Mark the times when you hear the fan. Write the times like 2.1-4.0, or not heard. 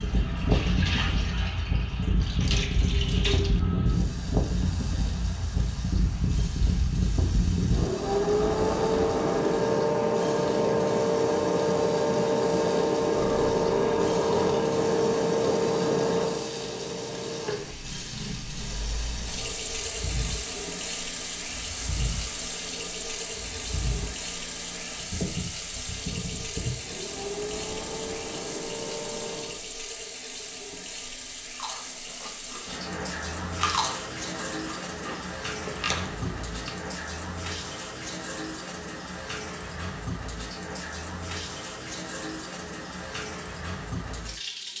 0.0-29.6.